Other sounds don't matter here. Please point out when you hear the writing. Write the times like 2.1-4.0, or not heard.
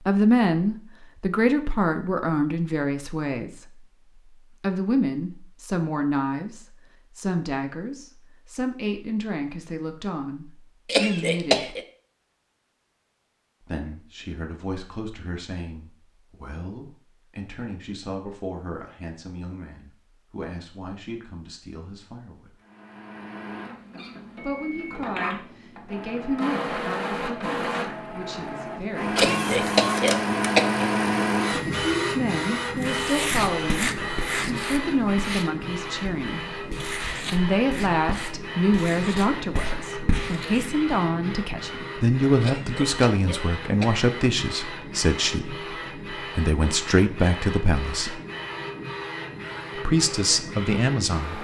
32.8-40.9.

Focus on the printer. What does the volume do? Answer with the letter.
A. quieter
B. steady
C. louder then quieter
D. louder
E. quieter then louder
C.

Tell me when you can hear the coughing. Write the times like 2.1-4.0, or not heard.
10.8-11.8, 29.1-30.9, 42.4-44.0.